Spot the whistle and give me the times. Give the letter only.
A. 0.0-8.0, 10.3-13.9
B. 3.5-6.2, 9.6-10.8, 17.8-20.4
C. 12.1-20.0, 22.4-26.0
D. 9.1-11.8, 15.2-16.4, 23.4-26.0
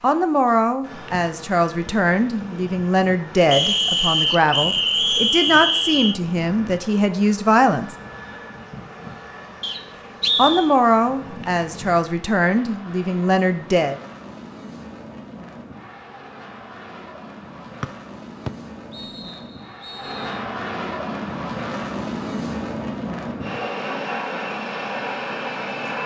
B.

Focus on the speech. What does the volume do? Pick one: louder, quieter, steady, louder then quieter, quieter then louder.
steady.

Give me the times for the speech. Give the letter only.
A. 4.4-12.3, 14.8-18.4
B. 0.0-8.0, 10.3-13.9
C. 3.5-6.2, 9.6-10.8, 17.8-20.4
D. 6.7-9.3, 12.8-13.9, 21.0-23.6
B.